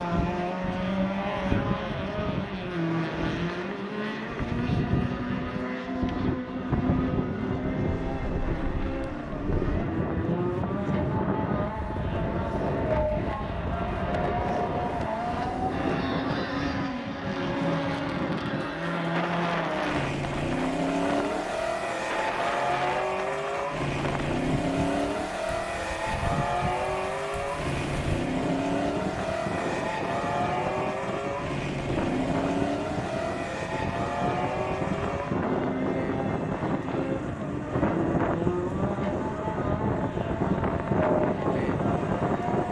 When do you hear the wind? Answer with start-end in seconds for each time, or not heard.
0.0-42.6.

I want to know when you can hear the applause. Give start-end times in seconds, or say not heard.
not heard.